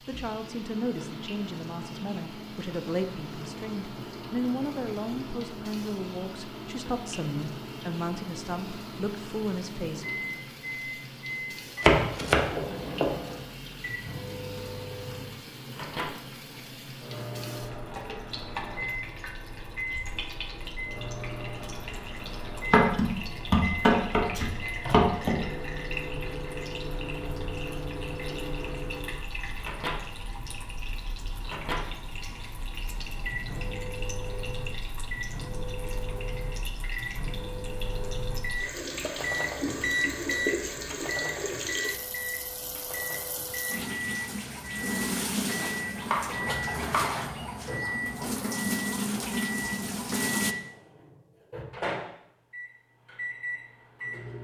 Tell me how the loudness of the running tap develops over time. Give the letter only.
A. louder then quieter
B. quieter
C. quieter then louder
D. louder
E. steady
D.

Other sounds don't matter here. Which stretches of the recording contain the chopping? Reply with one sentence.
The chopping can be heard from 11.8 to 13.2 s, from 22.7 to 25.4 s and from 46.0 to 47.3 s.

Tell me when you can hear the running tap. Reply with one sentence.
The running tap can be heard from 0.0 to 50.5 s.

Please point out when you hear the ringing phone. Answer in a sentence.
You can't hear the ringing phone here.